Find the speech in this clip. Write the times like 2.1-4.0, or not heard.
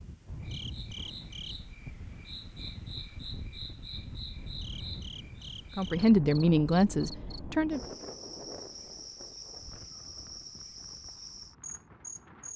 5.8-7.8.